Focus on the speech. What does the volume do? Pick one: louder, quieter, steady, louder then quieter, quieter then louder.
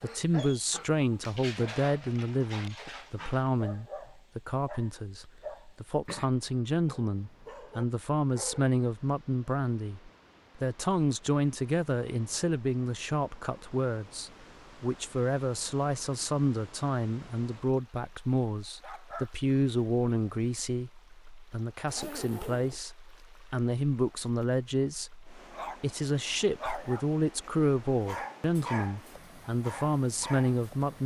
steady.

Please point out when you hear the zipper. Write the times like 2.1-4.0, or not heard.
21.9-22.8.